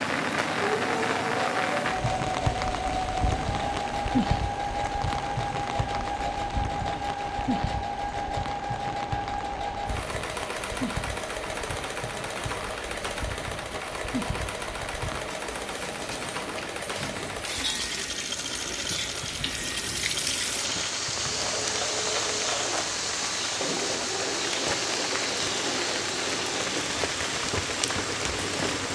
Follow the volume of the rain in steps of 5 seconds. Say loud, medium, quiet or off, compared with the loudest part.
loud, medium, medium, medium, loud, loud.